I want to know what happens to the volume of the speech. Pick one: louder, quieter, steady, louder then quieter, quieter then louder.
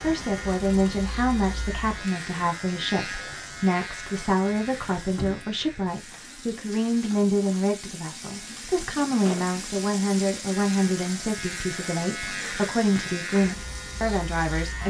steady.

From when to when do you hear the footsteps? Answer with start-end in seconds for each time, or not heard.
not heard.